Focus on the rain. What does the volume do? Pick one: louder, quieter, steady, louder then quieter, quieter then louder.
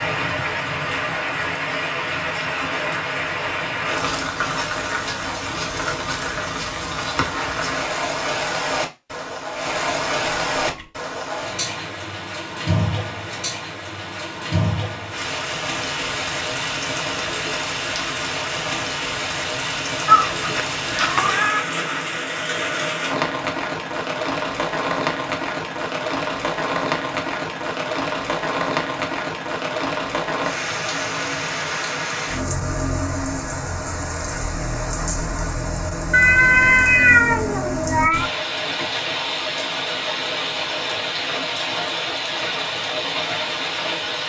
steady.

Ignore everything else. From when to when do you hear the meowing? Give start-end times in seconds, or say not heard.
10.2-10.9, 20.1-21.6, 36.1-38.3.